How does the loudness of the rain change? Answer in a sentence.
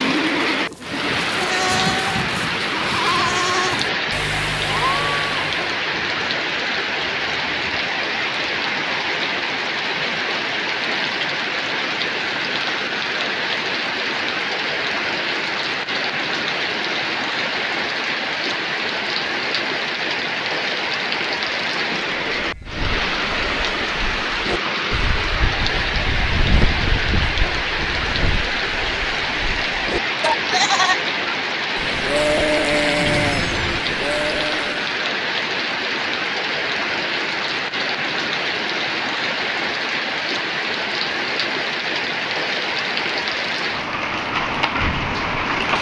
The loudness of the rain stays about the same.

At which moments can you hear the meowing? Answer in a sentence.
The meowing can be heard from 33.0 to 33.8 s.